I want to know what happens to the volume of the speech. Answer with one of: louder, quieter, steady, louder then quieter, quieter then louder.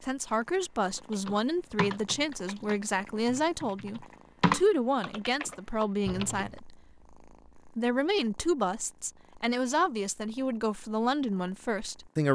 steady.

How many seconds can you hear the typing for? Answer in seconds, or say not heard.
6 s.